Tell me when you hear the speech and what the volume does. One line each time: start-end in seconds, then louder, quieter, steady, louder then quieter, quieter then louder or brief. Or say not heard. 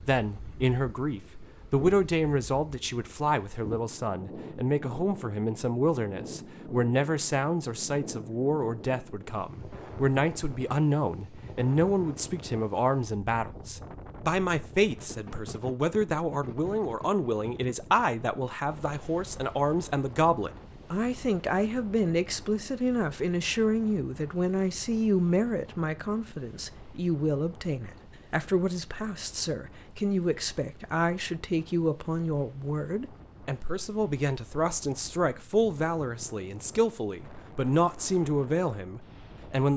0.1-39.7 steady.